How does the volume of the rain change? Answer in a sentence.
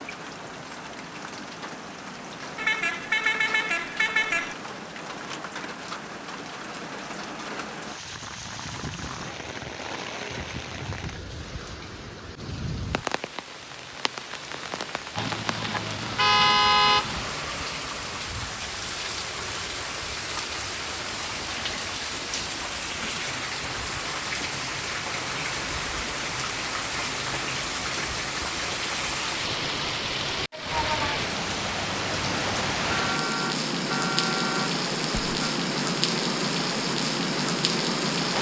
The volume of the rain goes up.